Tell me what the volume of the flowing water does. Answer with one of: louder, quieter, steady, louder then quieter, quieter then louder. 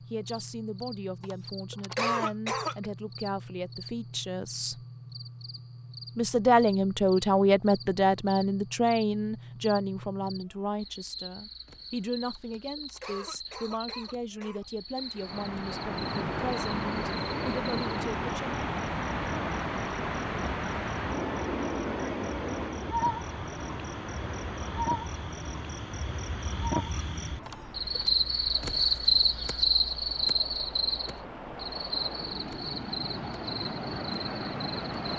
quieter then louder.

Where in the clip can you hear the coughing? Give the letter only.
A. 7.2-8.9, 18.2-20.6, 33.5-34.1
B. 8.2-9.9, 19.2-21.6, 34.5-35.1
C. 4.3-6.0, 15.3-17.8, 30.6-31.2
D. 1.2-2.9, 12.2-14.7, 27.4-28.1
D.